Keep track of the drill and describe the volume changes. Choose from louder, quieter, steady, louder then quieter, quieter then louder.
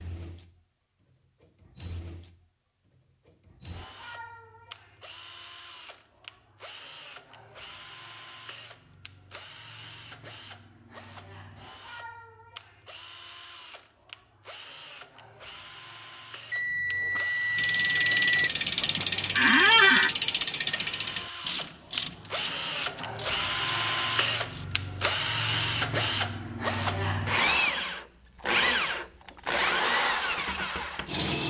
louder.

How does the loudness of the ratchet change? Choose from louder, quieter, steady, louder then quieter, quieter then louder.
quieter.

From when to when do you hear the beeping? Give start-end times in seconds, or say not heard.
16.5-18.5.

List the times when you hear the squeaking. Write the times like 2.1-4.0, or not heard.
19.4-20.1.